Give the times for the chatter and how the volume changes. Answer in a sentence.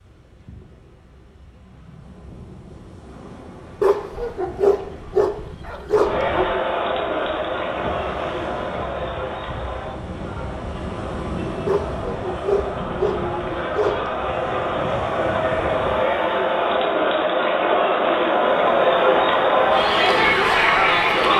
You can hear the chatter from 6.0 to 21.3 s, getting quieter then louder.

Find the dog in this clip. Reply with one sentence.
The dog can be heard from 3.8 to 6.5 s and from 11.7 to 14.2 s.